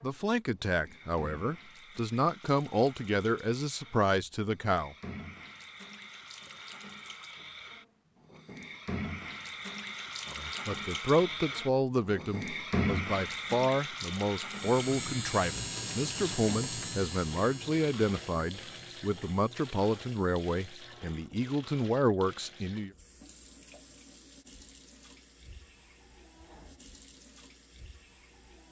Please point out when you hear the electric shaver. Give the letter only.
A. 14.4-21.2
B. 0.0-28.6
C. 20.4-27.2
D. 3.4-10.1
A.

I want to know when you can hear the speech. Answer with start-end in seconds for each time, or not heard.
0.0-5.0, 10.3-22.9.